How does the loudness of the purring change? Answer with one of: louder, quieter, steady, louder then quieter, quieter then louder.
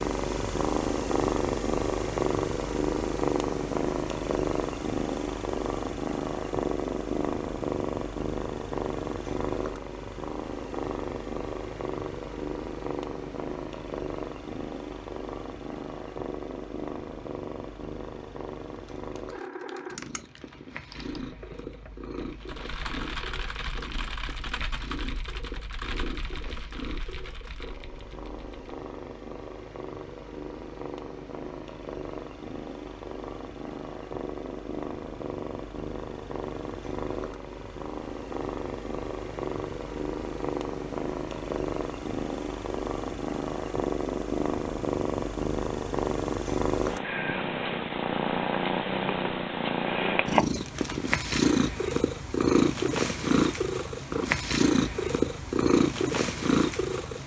quieter then louder.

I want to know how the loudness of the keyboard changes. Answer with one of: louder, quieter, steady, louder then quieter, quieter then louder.
louder then quieter.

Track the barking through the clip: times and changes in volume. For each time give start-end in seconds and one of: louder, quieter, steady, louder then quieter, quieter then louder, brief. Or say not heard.
not heard.